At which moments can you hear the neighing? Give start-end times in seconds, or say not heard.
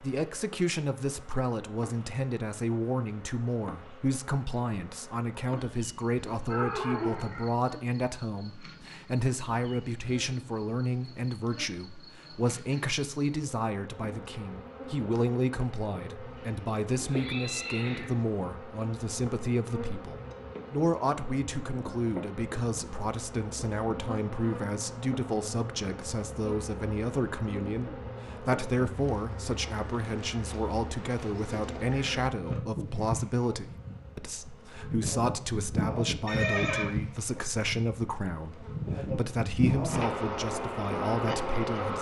6.5-7.5, 16.4-18.2, 36.2-36.9.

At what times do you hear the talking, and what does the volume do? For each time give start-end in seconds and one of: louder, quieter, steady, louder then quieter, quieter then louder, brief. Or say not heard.
0.0-41.9 steady.